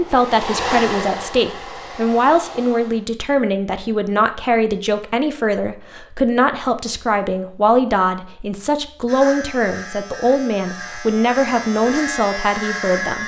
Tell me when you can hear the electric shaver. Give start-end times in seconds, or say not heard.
9.1-13.2.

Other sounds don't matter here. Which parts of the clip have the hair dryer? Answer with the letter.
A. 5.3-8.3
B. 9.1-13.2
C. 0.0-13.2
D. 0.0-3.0
D.